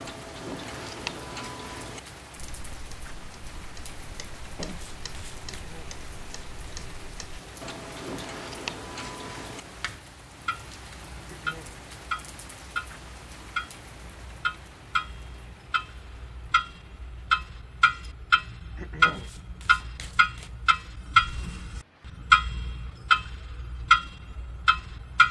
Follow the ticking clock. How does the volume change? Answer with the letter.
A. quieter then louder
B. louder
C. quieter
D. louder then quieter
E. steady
B.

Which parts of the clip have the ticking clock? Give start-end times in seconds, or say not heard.
0.0-25.2.